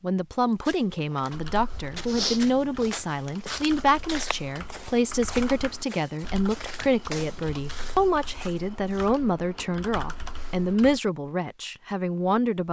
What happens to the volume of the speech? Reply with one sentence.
The loudness of the speech stays about the same.